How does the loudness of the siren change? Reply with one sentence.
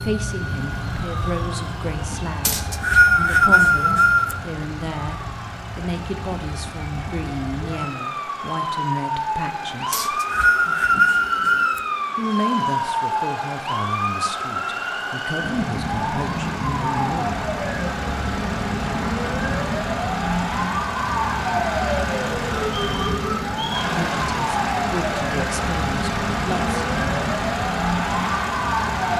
The loudness of the siren goes up.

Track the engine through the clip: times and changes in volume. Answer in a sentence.
The engine can be heard from 0.0 to 29.1 s, getting louder.